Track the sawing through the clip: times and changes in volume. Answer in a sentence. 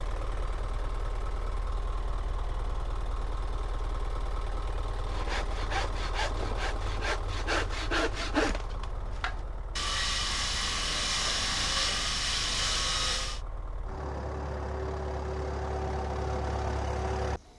The sawing can be heard from 5.0 to 13.4 s, getting louder.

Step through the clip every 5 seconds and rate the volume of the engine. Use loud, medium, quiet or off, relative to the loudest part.
medium, medium, medium, loud.